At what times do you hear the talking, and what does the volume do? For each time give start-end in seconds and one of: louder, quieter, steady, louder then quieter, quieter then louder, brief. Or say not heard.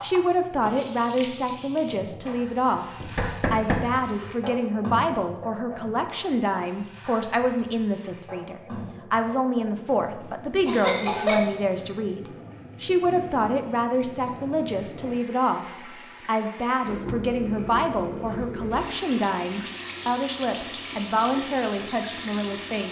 0.0-22.8 steady.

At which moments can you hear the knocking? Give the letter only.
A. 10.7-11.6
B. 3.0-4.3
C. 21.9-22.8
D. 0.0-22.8
B.